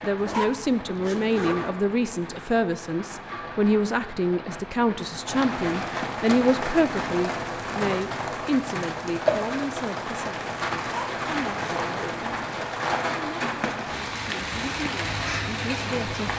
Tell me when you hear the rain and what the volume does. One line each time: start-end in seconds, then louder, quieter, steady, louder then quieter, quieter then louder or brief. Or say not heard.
0.0-16.3 louder.